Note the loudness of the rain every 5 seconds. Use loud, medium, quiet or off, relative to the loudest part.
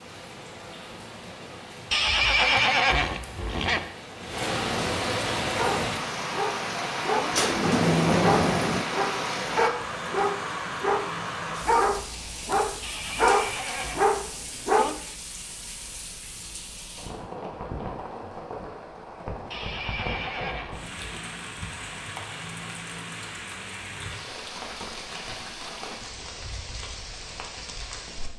medium, loud, medium, medium, medium, medium.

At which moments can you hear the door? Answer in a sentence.
You can hear the door from 7.3 to 8.8 s.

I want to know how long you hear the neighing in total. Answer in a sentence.
The neighing can be heard for 5 seconds in total.